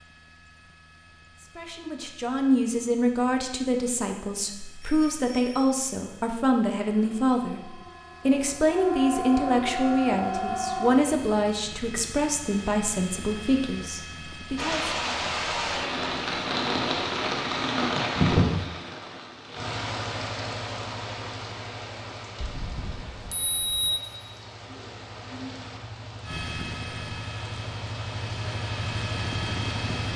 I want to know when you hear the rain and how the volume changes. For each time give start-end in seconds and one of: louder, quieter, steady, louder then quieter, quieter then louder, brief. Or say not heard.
14.6-30.1 quieter then louder.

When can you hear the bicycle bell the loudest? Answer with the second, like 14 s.
24 s.